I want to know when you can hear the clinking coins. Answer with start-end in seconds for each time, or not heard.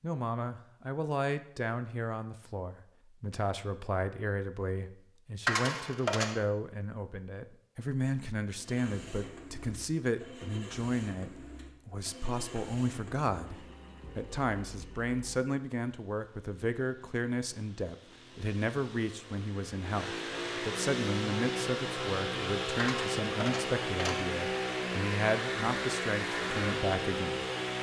5.5-6.4, 22.8-24.2.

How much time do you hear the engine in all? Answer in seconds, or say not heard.
19 s.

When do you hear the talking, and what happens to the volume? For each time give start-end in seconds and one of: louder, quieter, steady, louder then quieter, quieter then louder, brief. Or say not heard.
0.0-27.4 steady.